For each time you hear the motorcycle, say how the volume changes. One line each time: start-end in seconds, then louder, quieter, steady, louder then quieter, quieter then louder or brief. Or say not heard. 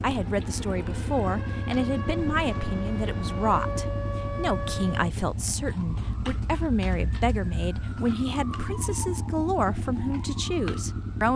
0.0-11.3 steady.